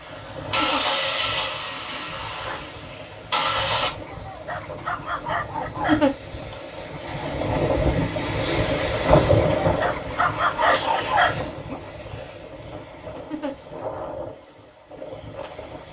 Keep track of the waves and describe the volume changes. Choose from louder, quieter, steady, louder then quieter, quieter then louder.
louder then quieter.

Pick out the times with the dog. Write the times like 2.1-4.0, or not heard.
3.9-6.5, 9.2-11.8.